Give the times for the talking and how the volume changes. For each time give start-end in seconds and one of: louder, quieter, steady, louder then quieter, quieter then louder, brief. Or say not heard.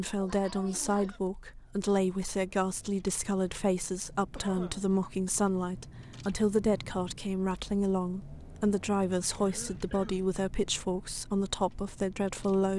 0.0-12.7 steady.